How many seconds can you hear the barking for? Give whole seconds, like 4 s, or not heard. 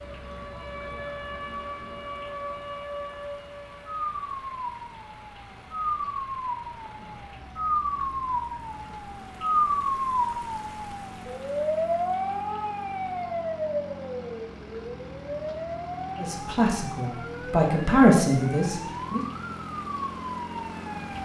not heard.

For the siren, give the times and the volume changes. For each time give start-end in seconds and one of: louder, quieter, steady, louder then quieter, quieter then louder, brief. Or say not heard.
0.0-21.1 louder then quieter.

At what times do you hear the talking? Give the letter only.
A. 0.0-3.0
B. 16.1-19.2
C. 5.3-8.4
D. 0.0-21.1
B.